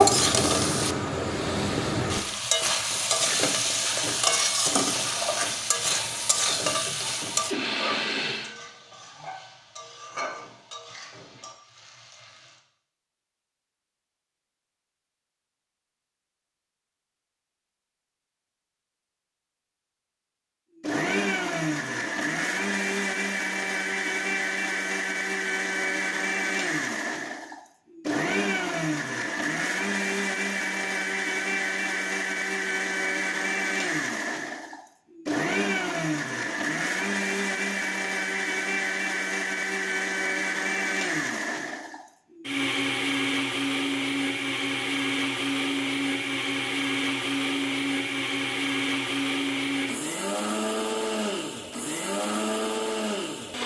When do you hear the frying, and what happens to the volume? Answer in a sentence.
The frying can be heard from 0.0 to 12.6 s, getting quieter.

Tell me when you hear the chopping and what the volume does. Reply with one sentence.
You can't hear the chopping here.